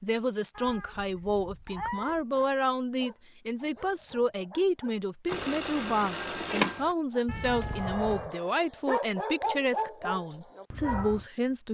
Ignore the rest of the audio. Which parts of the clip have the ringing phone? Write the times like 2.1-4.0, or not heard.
5.2-7.0.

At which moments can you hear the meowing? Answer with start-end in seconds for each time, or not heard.
0.6-2.2, 7.2-8.3.